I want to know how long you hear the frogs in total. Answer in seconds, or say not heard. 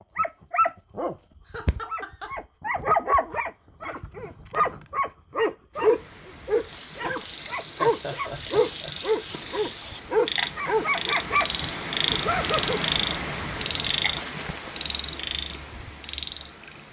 10 s.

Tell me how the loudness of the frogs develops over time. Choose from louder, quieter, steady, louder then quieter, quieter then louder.
louder then quieter.